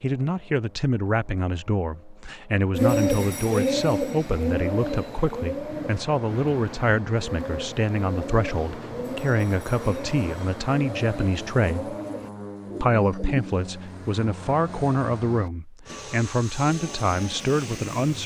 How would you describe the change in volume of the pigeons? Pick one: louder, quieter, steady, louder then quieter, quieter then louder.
quieter.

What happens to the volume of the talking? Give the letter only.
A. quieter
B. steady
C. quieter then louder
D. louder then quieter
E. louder
B.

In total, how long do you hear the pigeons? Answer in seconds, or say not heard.
11 s.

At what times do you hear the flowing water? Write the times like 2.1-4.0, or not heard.
not heard.